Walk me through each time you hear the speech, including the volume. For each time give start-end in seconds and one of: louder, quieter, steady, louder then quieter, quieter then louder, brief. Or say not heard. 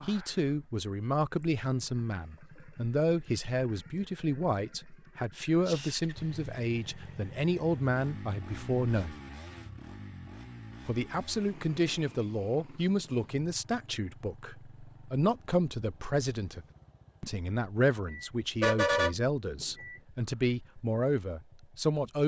0.0-9.2 steady
10.8-22.2 steady.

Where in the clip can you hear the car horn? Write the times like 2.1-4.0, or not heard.
18.1-20.0.